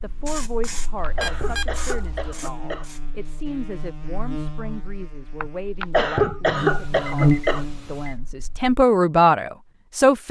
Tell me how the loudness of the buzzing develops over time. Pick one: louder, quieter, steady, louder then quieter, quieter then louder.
louder.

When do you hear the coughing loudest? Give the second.
6 s.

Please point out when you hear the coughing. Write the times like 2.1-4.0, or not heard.
0.6-2.9, 5.4-7.7.